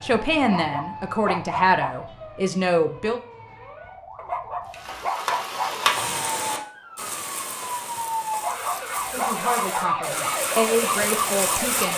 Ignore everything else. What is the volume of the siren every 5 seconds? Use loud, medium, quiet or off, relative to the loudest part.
quiet, loud, loud.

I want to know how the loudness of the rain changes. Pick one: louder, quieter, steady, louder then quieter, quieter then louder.
quieter then louder.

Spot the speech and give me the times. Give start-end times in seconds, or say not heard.
0.0-3.2, 9.1-11.9.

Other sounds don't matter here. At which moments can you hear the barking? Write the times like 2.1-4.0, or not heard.
0.4-1.9, 4.2-5.8, 8.3-9.9.